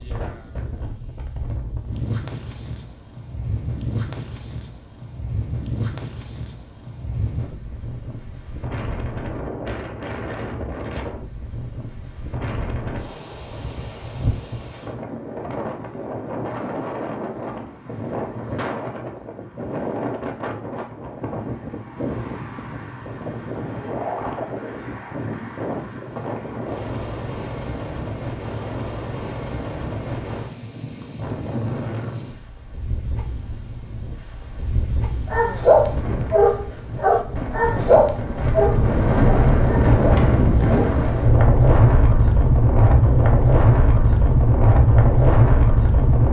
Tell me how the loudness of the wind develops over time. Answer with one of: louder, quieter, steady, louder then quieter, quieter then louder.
louder.